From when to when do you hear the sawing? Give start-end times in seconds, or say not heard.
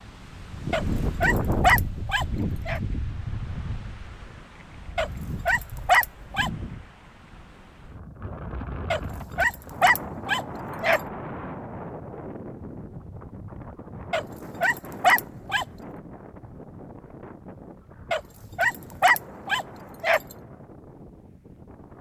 not heard.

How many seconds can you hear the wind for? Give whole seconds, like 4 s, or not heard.
22 s.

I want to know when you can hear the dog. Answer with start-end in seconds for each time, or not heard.
0.7-2.8, 5.0-6.5, 8.9-11.0, 14.1-15.7, 18.1-20.2.